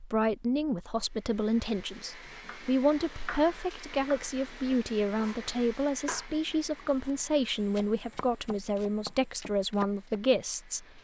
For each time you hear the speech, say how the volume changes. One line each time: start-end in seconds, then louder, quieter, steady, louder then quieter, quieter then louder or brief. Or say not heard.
0.0-10.9 steady.